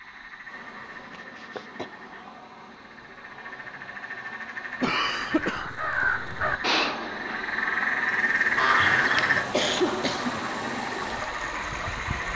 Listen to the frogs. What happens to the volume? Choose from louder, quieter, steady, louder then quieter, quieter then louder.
louder then quieter.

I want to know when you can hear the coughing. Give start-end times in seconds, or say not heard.
1.1-1.9, 4.8-5.7, 8.8-10.4.